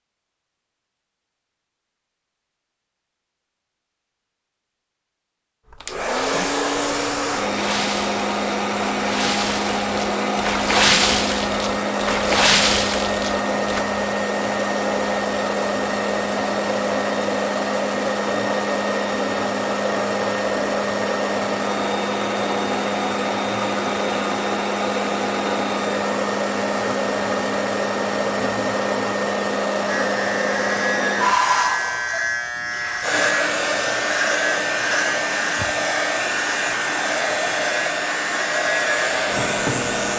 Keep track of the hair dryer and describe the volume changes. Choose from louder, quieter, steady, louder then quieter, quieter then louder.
steady.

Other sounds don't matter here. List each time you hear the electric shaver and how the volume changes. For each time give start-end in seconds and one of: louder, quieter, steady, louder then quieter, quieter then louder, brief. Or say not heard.
29.9-40.1 steady.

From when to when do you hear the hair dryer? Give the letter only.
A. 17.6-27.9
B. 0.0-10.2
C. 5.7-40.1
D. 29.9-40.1
C.